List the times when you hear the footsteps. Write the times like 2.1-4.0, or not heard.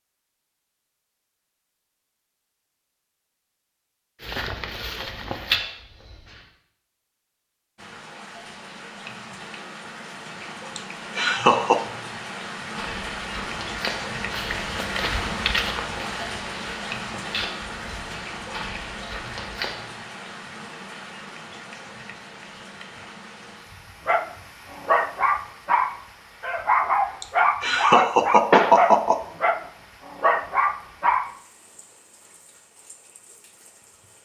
4.2-6.5, 12.8-19.9.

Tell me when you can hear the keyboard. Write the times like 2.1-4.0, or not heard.
not heard.